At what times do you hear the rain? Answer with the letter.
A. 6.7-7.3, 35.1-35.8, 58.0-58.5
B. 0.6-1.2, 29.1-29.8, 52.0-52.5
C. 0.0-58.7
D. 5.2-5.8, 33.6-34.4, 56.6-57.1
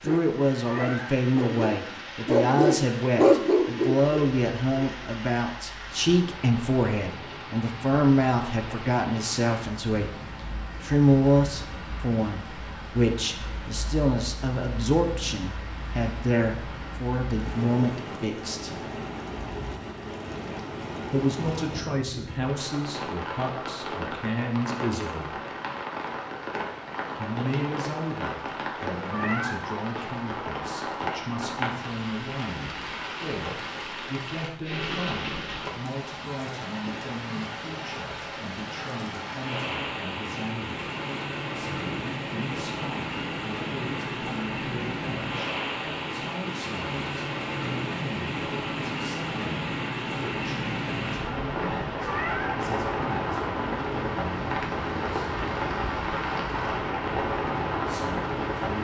C.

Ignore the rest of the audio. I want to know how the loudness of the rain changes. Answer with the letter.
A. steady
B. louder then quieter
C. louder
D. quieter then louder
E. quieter
C.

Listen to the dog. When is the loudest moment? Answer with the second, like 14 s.
3 s.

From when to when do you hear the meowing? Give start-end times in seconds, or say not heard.
0.6-1.2, 29.1-29.8, 52.0-52.5.